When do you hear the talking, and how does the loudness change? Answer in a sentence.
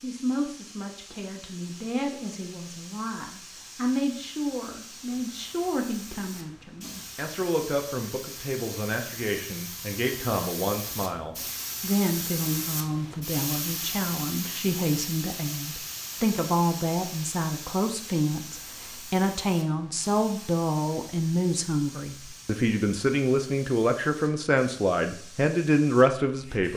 You can hear the talking from 0.0 to 26.7 s, getting louder.